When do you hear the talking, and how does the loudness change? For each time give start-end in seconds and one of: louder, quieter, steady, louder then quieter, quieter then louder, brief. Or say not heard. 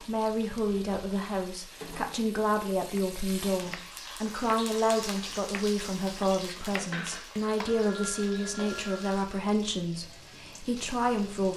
0.0-11.5 steady.